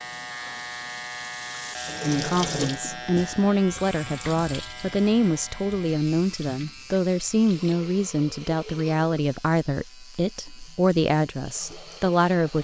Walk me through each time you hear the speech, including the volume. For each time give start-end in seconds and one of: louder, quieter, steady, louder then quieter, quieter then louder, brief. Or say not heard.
2.0-12.5 steady.